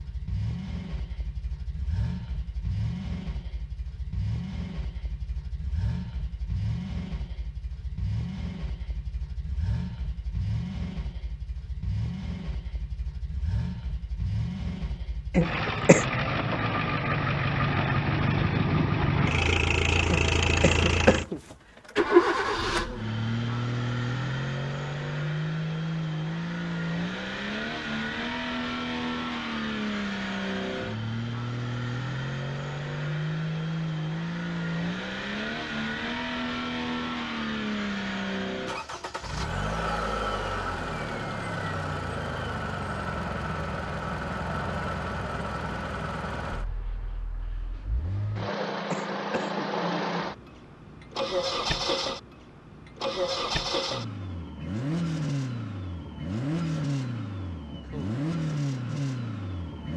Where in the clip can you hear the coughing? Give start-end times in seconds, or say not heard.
15.3-16.1, 20.1-21.4, 48.4-49.7.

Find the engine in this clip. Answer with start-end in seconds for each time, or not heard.
0.0-59.9.